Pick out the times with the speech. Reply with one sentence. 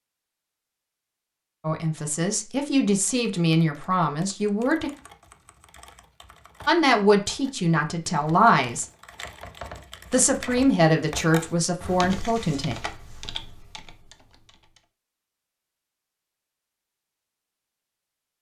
The speech can be heard from 1.6 to 4.9 s, from 6.7 to 8.8 s and from 10.1 to 12.8 s.